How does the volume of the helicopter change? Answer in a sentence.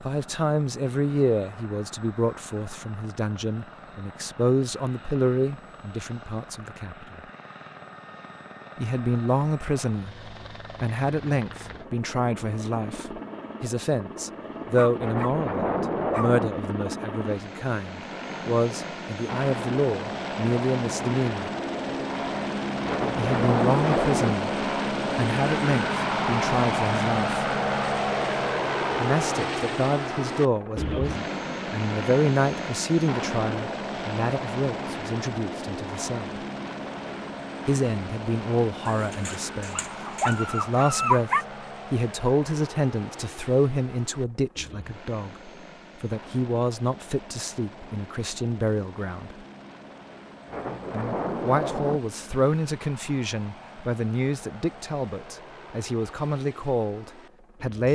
The loudness of the helicopter goes up, then down.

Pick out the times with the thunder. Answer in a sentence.
The thunder can be heard from 14.9 to 16.5 s, from 22.8 to 24.4 s and from 50.5 to 52.0 s.